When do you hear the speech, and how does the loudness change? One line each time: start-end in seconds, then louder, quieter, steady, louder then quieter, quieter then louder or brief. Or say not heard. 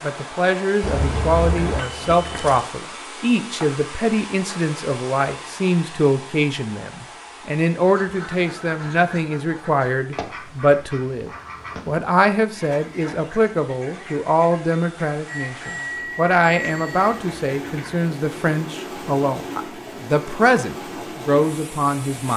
0.0-22.3 steady.